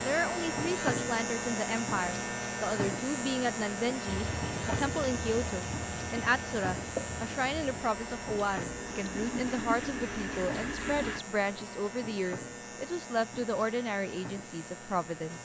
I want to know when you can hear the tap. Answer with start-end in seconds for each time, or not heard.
4.0-11.2.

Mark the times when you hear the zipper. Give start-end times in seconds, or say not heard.
not heard.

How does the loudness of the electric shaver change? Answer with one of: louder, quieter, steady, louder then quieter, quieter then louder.
quieter.